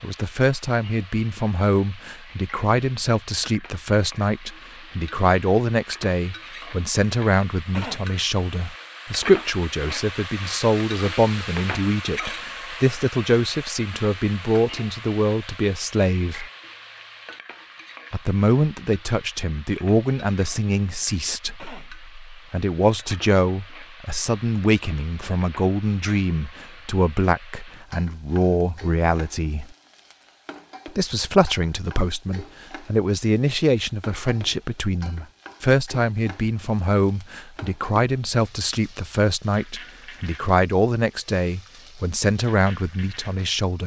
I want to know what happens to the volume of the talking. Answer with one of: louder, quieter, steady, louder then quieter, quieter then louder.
steady.